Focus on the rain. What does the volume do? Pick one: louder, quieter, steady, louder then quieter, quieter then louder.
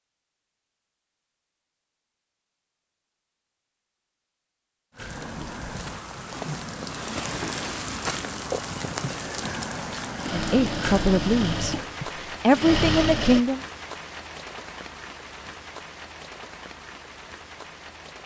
quieter.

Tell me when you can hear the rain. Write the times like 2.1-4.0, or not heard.
5.0-18.2.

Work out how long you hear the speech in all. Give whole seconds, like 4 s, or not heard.
3 s.